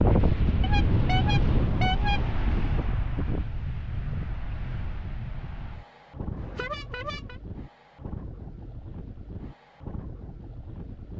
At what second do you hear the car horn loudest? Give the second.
2 s.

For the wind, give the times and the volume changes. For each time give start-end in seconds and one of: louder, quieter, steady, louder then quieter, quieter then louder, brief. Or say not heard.
0.0-11.1 quieter.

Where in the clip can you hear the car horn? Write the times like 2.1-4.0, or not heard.
0.6-2.2, 6.3-7.3.